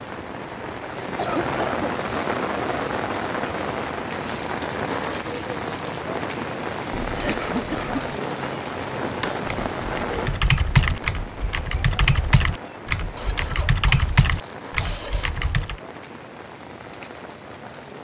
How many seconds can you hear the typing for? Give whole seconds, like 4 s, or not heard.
7 s.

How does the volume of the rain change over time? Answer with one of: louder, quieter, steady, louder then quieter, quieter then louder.
quieter.